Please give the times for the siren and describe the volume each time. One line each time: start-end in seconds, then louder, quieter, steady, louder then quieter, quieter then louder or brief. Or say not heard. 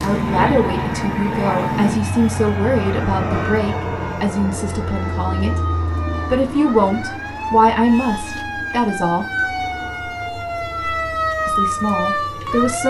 0.0-12.8 louder.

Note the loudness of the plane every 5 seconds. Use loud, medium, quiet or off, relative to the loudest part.
loud, medium, quiet.